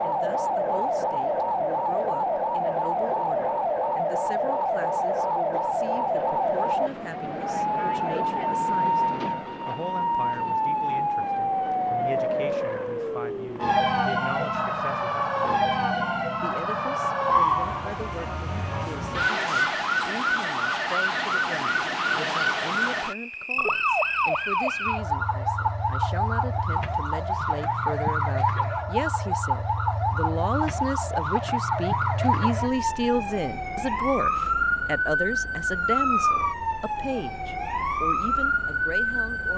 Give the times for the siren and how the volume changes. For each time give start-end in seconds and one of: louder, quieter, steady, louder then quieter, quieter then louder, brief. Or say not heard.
0.0-39.5 steady.